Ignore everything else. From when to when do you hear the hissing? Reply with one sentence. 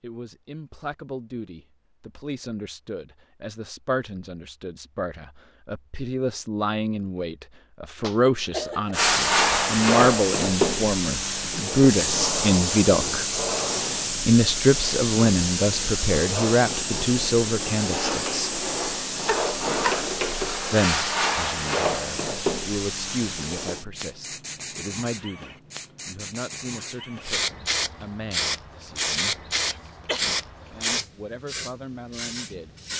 The hissing can be heard from 8.9 to 32.9 s.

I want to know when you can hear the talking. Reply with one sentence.
You can hear the talking from 0.0 to 13.2 s, from 14.2 to 18.6 s, from 20.6 to 29.4 s and from 30.1 to 32.8 s.